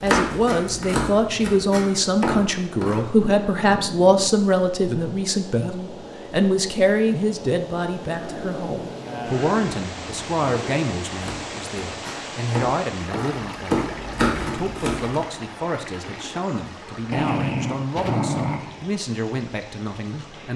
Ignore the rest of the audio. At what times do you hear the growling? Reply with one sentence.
The growling can be heard from 3.1 to 4.3 s, from 8.2 to 10.8 s and from 17.1 to 18.9 s.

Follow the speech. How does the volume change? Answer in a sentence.
The loudness of the speech goes down.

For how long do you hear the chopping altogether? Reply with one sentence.
You can hear the chopping for 7 seconds altogether.